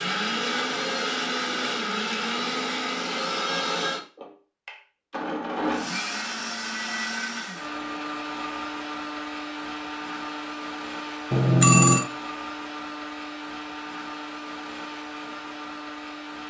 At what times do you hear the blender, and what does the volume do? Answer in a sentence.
You can hear the blender from 0.0 to 16.4 s, getting quieter.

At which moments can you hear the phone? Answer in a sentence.
The phone can be heard from 11.3 to 12.1 s.